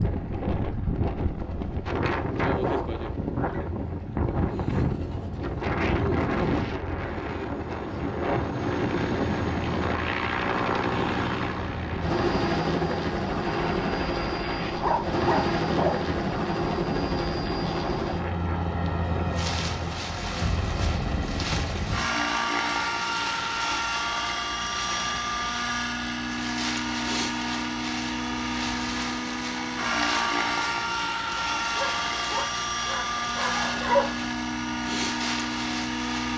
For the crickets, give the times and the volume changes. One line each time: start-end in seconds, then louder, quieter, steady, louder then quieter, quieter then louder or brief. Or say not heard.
not heard.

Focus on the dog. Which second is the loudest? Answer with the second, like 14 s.
34 s.